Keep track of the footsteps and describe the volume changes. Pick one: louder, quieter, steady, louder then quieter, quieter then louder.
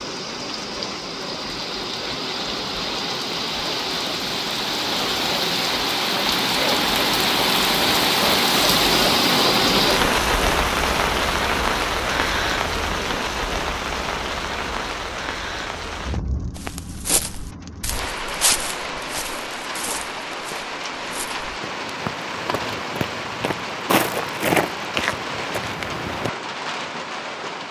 quieter then louder.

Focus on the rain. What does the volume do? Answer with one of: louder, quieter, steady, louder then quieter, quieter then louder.
louder then quieter.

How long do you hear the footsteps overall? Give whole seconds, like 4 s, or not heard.
10 s.